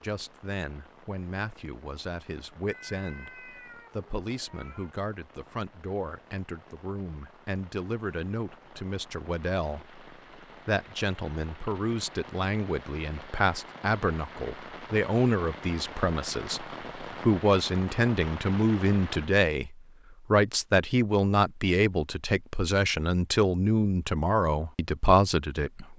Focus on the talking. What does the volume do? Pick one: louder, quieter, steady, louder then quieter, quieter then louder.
louder.